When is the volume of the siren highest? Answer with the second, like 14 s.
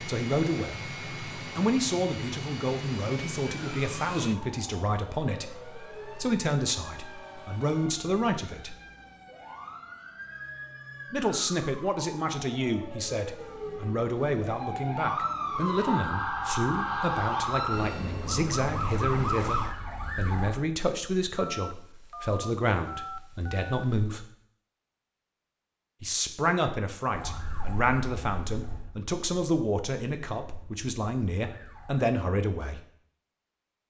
17 s.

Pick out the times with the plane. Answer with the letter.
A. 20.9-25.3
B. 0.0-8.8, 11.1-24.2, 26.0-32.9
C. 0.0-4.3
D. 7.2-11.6
C.